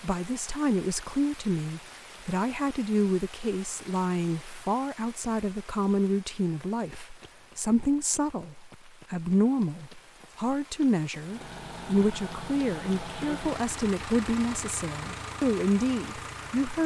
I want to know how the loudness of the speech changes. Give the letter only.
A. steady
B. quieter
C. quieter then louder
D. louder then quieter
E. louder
A.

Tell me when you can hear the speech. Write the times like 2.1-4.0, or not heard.
0.0-16.8.